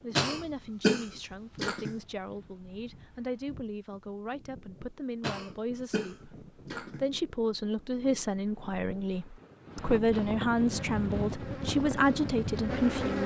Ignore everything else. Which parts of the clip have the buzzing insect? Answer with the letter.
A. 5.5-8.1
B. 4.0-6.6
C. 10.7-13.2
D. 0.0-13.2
C.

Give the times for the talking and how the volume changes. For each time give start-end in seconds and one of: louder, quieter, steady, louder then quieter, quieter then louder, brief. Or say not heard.
0.0-13.2 louder.